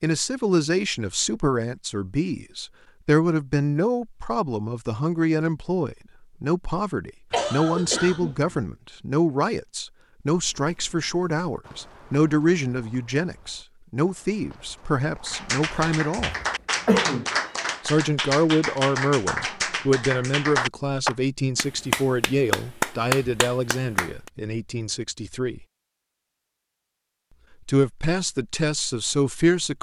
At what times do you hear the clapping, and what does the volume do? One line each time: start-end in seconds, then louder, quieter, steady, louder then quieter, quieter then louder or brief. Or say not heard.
15.2-24.3 steady.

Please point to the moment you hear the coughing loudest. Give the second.
17 s.